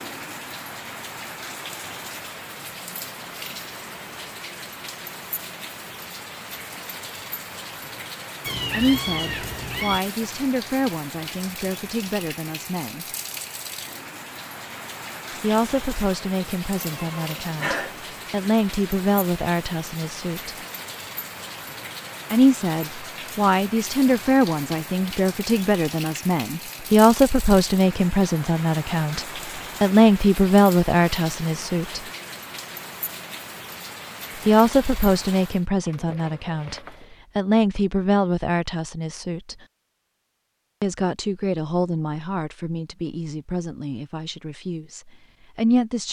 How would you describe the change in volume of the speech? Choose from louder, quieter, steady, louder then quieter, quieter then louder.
louder then quieter.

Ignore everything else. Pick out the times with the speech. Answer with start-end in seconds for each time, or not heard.
8.7-13.1, 15.4-20.6, 22.3-32.0, 34.5-39.5, 40.8-46.0.